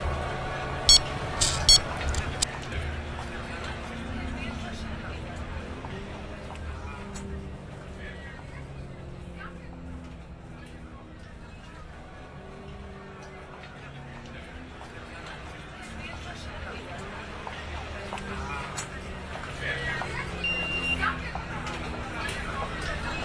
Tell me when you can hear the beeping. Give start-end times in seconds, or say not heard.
0.8-2.5, 20.4-21.0.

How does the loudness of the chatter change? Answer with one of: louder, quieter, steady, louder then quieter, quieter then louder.
quieter then louder.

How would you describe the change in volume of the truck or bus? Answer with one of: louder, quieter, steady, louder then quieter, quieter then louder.
quieter then louder.